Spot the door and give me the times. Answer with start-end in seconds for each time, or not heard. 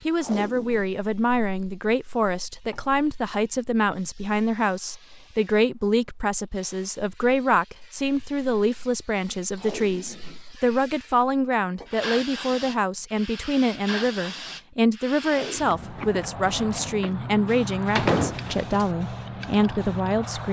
17.9-18.9.